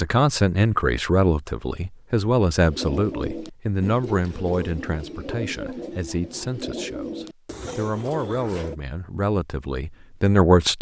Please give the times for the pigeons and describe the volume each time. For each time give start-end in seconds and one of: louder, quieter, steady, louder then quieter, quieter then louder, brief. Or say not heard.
2.6-8.8 steady.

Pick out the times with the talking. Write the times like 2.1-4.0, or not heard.
0.0-10.7.